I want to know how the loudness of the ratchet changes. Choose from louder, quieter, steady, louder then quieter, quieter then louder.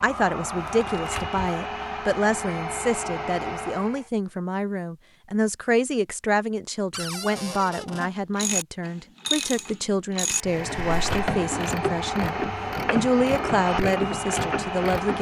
steady.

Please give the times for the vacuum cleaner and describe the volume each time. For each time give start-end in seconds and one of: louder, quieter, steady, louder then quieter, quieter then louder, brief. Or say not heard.
0.0-4.1 steady
10.3-15.1 steady.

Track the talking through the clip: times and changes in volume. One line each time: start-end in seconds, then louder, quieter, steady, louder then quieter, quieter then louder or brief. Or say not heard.
0.0-15.1 steady.